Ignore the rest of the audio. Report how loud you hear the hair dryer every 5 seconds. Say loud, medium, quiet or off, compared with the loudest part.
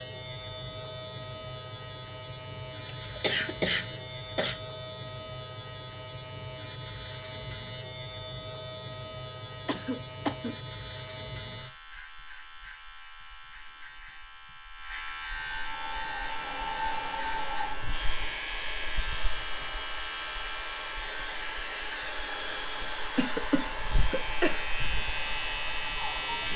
off, off, off, loud, loud, loud.